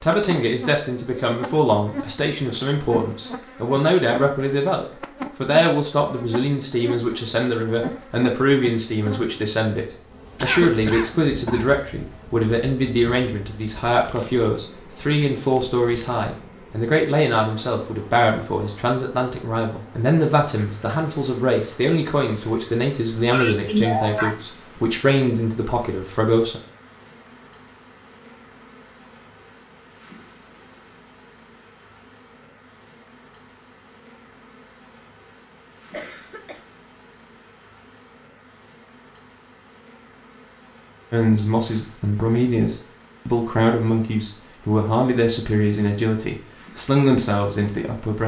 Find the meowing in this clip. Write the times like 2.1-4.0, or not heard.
not heard.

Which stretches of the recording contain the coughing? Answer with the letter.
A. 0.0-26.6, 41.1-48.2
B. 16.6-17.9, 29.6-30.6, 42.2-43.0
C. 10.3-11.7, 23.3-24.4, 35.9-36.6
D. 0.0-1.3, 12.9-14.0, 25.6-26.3
C.